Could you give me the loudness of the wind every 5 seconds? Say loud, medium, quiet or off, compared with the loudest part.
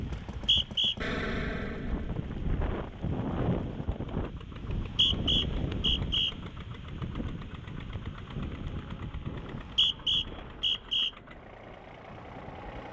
loud, loud, quiet.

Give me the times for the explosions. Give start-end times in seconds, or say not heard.
1.0-2.3.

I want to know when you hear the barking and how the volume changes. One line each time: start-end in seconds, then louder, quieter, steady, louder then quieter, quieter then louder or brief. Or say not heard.
not heard.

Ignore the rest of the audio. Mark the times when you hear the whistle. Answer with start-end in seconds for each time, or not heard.
0.1-0.9, 4.5-6.3, 9.3-11.1.